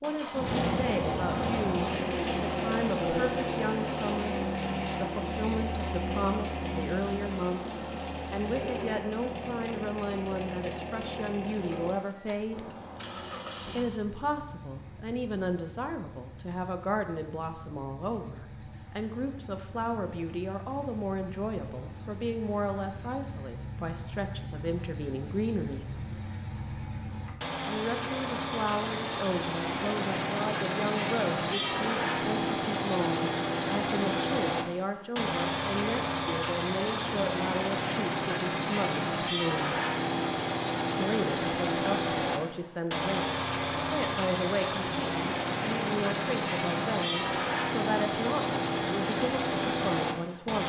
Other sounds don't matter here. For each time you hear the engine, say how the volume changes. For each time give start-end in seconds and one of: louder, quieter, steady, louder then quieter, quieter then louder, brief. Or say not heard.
0.0-50.6 quieter then louder.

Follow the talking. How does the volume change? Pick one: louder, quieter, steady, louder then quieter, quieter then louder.
steady.